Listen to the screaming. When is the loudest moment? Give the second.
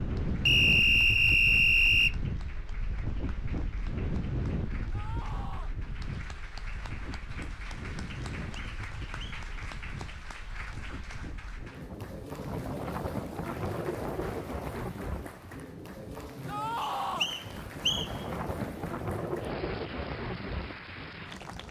17 s.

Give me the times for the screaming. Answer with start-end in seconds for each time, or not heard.
4.9-5.8, 16.4-17.3.